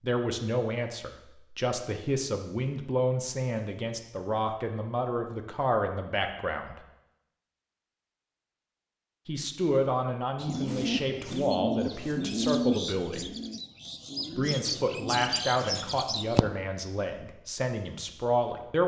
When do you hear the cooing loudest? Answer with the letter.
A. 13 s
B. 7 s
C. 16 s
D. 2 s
A.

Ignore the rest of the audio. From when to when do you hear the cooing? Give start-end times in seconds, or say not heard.
10.4-16.4.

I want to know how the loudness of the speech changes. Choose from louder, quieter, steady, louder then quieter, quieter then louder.
steady.